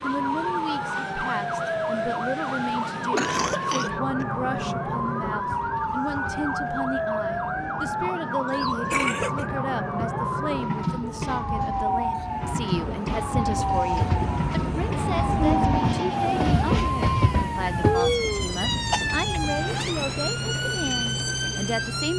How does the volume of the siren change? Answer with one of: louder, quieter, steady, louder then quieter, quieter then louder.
steady.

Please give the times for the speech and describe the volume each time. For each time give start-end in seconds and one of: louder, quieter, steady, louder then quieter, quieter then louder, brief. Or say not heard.
0.0-22.1 steady.